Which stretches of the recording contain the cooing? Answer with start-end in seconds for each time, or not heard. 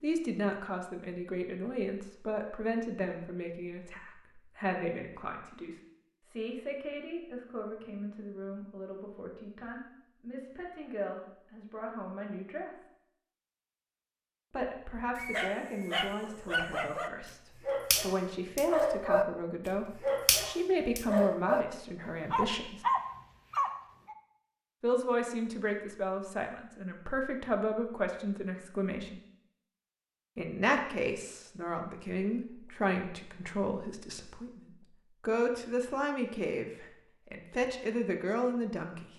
not heard.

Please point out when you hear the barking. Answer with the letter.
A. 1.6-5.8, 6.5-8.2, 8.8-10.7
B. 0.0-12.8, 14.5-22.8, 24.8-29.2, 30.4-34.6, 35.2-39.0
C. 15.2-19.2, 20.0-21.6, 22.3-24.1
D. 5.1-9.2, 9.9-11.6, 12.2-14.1
C.